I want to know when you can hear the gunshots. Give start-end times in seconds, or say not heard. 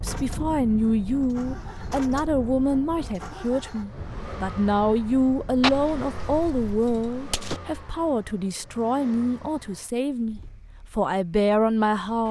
5.6-7.6.